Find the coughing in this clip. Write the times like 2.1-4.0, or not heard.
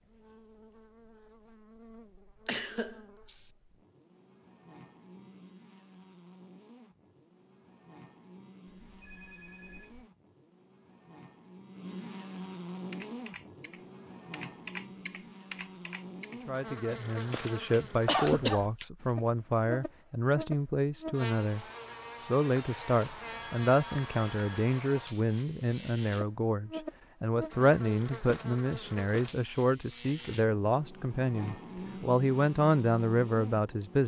2.5-3.3, 18.1-18.7.